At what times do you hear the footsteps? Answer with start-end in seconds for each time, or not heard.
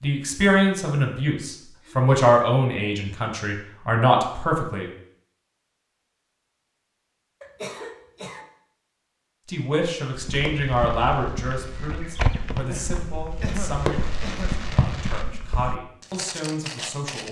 10.1-17.2.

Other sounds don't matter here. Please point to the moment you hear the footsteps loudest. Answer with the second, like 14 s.
12 s.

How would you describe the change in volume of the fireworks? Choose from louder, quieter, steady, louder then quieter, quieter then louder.
louder.